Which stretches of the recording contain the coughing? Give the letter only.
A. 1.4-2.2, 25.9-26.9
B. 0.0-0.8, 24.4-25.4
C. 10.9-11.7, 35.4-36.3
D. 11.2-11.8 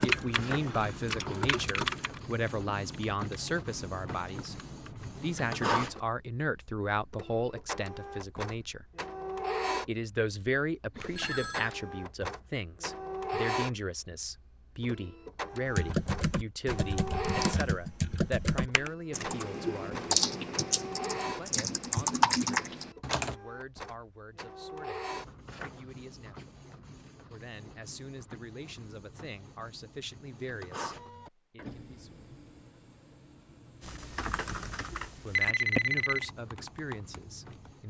D.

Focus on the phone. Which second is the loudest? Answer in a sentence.
The loudest moment of the phone is at 36 seconds.